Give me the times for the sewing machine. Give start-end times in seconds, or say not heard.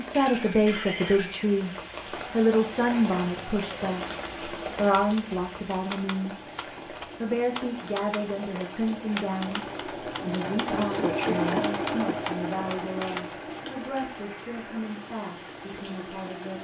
2.2-16.5.